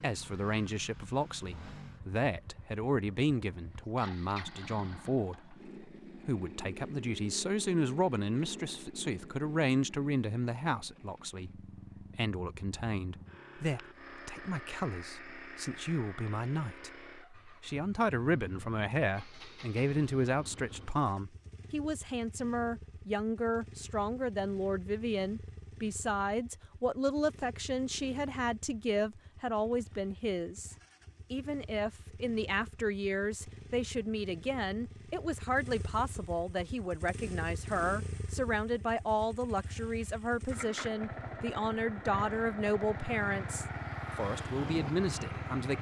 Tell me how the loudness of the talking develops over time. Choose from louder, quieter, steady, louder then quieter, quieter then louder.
steady.